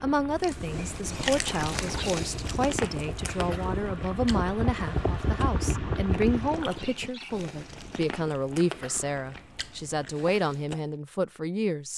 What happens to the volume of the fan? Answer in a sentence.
The volume of the fan goes up.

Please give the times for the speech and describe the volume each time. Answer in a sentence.
The speech can be heard from 0.0 to 11.9 s, at a steady volume.